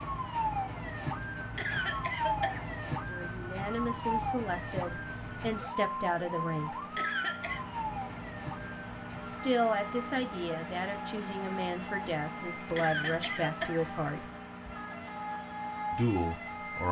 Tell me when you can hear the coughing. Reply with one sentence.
The coughing can be heard from 1.6 to 2.6 s, from 7.0 to 7.7 s and from 12.8 to 13.8 s.